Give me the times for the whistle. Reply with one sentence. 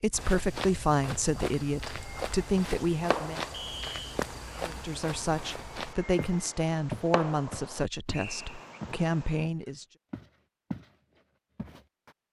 You can hear the whistle from 3.5 to 4.2 s and from 8.1 to 8.8 s.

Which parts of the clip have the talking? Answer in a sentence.
The talking can be heard from 0.0 to 3.5 s and from 4.6 to 9.8 s.